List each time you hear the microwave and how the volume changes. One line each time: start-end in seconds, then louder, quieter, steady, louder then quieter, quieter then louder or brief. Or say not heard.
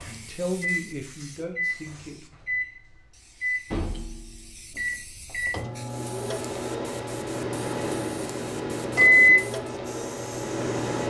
0.0-11.0 louder.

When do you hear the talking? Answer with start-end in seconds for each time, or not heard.
0.0-2.2.